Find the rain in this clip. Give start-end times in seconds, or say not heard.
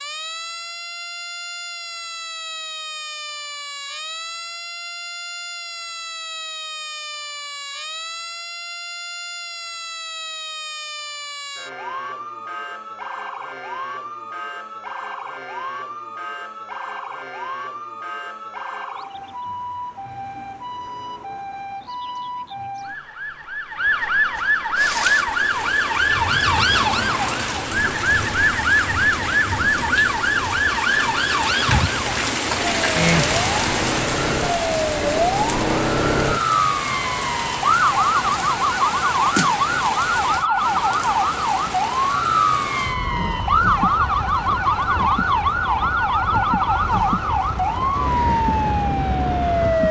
24.8-49.8.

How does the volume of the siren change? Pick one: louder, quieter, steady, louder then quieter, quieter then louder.
louder.